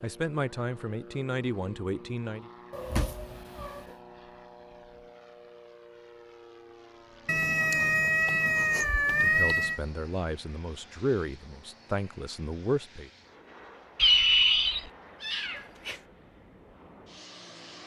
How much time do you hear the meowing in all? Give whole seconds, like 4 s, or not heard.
6 s.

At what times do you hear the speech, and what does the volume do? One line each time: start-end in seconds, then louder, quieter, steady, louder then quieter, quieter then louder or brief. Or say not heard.
0.0-2.5 brief
9.1-13.1 louder then quieter.